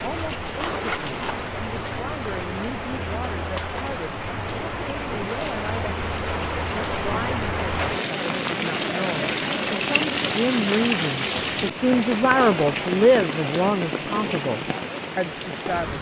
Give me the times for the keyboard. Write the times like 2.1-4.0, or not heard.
not heard.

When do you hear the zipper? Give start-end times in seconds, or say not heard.
0.6-1.4.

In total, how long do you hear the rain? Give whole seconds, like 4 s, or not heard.
16 s.